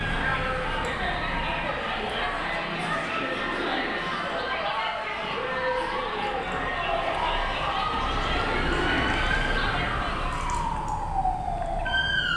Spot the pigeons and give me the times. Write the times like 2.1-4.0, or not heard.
2.7-4.6, 7.9-10.3.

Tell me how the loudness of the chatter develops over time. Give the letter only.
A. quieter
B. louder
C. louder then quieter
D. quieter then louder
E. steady
E.